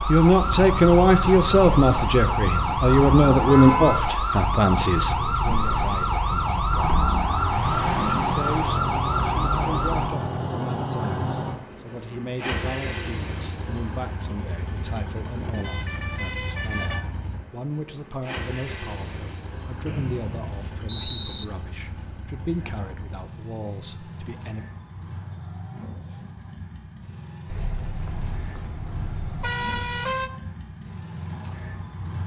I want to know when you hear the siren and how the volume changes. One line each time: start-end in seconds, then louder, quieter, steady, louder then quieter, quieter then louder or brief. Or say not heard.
0.0-10.1 steady.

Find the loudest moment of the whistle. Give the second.
21 s.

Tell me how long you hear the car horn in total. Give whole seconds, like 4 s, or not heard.
5 s.